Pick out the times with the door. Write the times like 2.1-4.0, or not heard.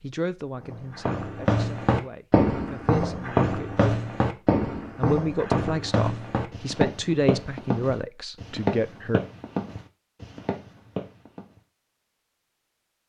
not heard.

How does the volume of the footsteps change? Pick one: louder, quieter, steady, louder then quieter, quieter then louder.
quieter.